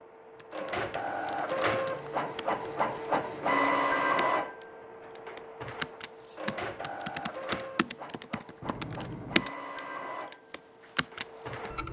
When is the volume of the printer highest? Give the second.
4 s.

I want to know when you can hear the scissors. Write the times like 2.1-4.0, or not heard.
8.6-9.5.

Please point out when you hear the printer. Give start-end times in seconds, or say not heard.
0.0-11.8.